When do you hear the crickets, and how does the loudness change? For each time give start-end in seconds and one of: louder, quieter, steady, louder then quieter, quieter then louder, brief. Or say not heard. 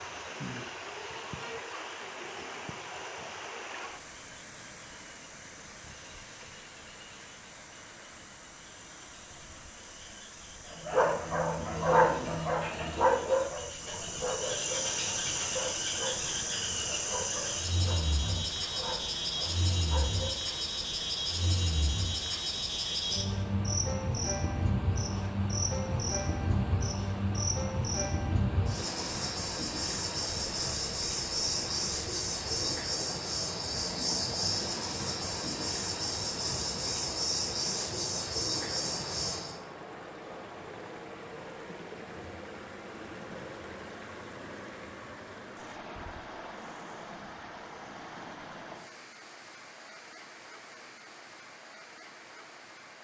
0.0-39.6 louder.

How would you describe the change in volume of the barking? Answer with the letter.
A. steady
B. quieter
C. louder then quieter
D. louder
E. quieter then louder
B.